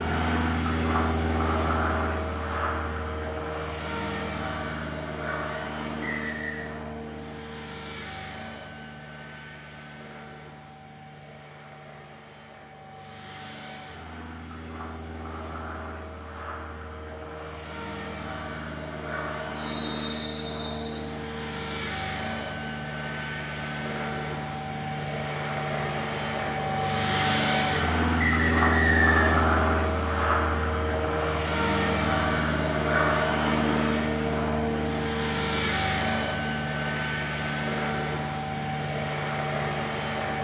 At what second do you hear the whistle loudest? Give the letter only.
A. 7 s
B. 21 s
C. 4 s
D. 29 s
D.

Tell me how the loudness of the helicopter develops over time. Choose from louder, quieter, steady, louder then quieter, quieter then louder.
quieter then louder.